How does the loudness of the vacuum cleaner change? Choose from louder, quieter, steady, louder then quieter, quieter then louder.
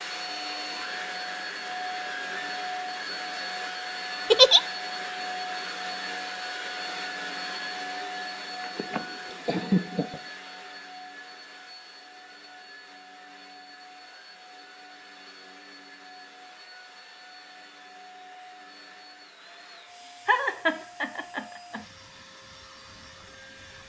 quieter.